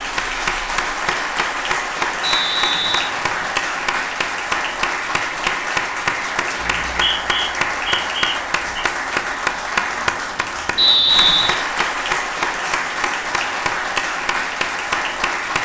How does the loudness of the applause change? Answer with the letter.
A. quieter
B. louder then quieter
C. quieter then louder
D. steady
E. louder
D.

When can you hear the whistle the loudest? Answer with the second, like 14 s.
11 s.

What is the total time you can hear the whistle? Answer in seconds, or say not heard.
4 s.